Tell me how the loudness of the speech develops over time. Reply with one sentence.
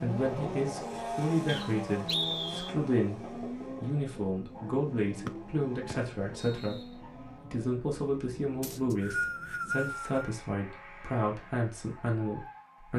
The volume of the speech stays about the same.